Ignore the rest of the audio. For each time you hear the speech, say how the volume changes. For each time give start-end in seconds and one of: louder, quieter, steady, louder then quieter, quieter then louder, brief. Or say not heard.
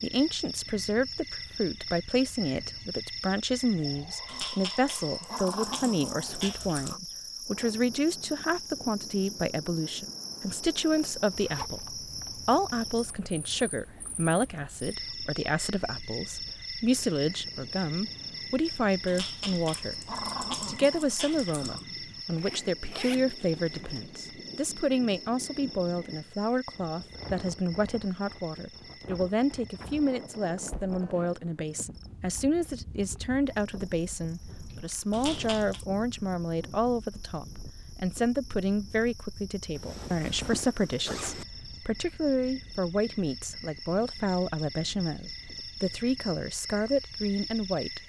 0.0-48.0 steady.